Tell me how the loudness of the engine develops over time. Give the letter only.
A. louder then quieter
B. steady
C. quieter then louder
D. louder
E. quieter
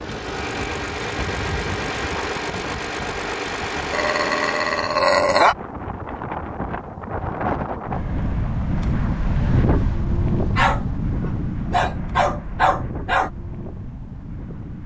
B.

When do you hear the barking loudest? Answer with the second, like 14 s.
5 s.